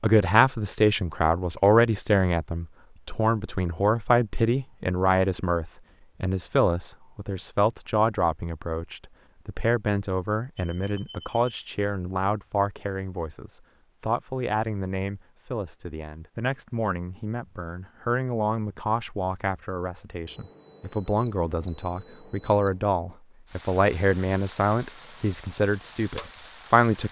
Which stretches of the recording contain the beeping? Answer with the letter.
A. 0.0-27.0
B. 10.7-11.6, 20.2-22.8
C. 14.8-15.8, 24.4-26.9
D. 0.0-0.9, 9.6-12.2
B.